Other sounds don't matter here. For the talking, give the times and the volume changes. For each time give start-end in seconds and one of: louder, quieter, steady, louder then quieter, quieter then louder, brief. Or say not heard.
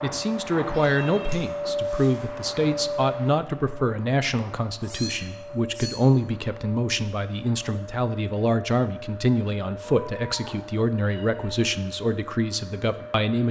0.0-13.4 steady.